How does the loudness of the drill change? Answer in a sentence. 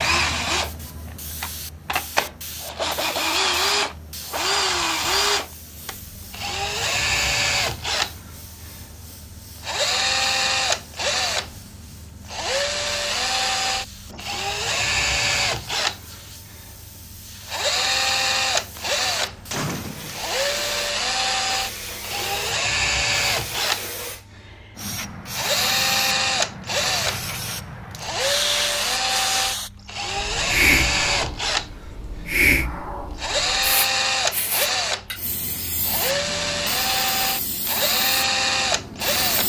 The loudness of the drill stays about the same.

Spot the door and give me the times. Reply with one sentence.
The door can be heard from 18.8 to 20.2 s.